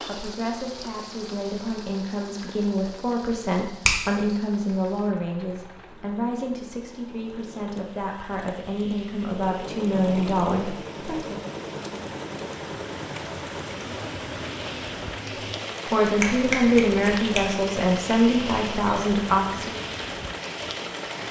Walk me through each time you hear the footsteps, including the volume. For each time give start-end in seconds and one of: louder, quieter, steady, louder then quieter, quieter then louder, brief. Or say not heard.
not heard.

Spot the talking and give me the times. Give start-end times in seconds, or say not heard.
0.0-11.4, 15.9-19.8.